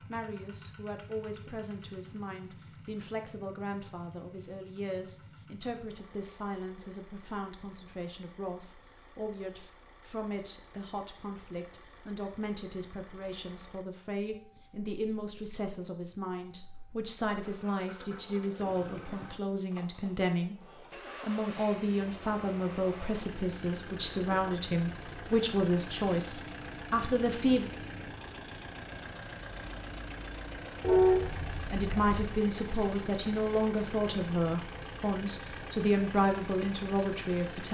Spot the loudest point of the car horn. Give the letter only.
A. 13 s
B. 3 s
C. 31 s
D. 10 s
C.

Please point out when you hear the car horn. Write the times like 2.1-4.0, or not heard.
30.8-32.2.